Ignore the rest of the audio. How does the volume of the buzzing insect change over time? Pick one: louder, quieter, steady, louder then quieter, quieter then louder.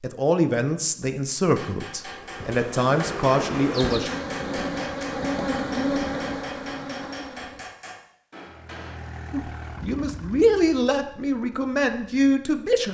louder then quieter.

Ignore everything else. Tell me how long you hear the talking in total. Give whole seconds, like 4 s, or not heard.
8 s.